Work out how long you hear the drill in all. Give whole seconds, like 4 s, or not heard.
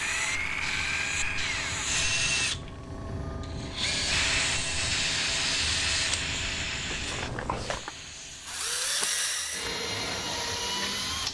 11 s.